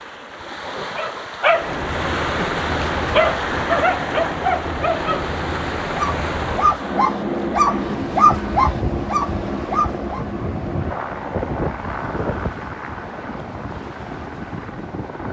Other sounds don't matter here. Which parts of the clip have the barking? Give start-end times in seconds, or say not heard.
0.9-10.2.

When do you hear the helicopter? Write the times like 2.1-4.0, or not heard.
1.5-15.2.